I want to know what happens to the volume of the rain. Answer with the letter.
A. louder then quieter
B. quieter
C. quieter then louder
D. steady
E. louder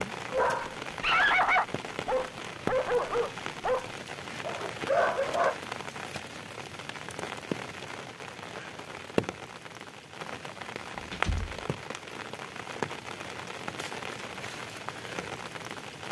D.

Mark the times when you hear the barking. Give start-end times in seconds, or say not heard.
0.3-5.5.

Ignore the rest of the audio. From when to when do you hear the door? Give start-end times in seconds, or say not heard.
10.9-11.7.